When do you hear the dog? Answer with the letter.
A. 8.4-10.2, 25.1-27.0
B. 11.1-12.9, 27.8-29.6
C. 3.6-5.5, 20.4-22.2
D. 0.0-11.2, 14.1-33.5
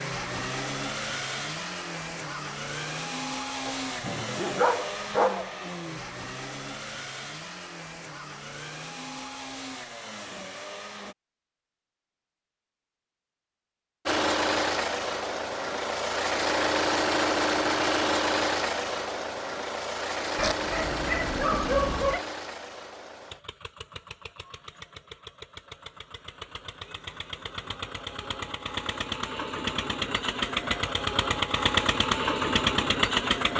C.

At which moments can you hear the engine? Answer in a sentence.
You can hear the engine from 0.0 to 11.2 s and from 14.1 to 33.5 s.